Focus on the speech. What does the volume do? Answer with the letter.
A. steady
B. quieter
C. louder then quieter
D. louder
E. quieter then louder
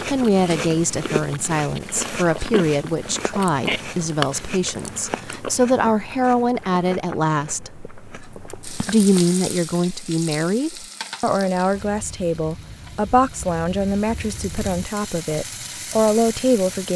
A.